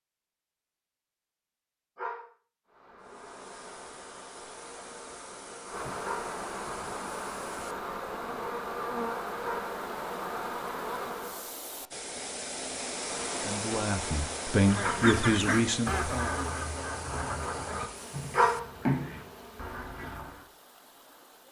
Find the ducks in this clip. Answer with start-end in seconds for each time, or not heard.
14.7-20.4.